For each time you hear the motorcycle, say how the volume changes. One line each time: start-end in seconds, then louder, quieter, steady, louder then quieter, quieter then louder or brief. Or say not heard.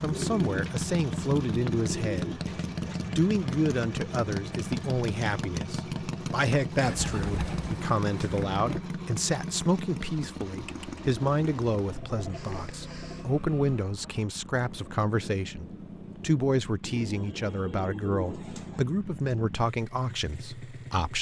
0.0-21.1 quieter.